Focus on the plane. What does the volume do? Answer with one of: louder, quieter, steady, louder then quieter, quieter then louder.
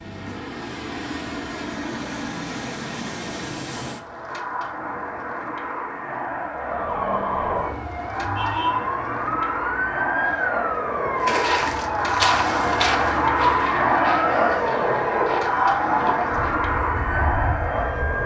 louder.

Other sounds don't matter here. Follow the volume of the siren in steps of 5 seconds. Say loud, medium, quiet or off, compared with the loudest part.
off, loud, loud, loud.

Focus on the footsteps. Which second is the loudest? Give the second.
12 s.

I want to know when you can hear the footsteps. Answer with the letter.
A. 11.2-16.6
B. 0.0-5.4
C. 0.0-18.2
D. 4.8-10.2
A.